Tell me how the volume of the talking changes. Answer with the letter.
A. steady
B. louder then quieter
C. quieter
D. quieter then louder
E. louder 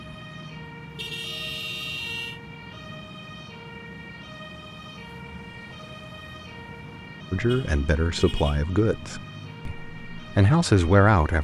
D.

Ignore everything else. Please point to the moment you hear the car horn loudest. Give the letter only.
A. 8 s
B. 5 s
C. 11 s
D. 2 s
D.